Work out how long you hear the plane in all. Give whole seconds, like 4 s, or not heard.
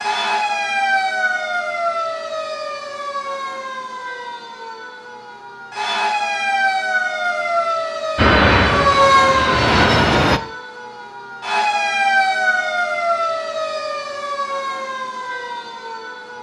2 s.